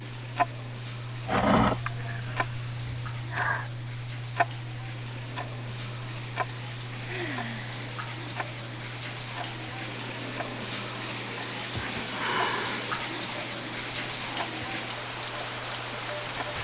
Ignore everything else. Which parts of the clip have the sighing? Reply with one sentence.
You can hear the sighing from 1.2 to 3.7 s, from 7.0 to 7.8 s and from 11.7 to 13.0 s.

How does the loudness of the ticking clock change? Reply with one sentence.
The loudness of the ticking clock goes down.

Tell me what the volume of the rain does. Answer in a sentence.
The loudness of the rain goes up.